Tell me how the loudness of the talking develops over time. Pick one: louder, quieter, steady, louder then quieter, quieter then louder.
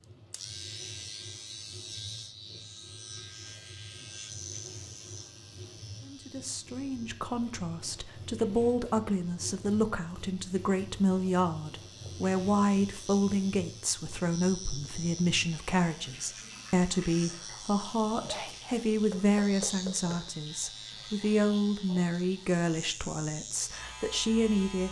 steady.